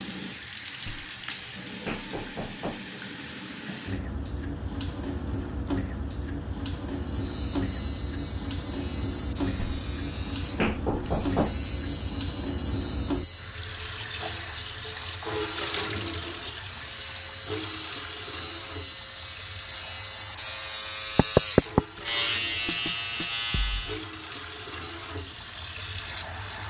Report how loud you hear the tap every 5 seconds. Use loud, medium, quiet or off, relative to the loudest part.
loud, loud, loud, loud, medium, loud.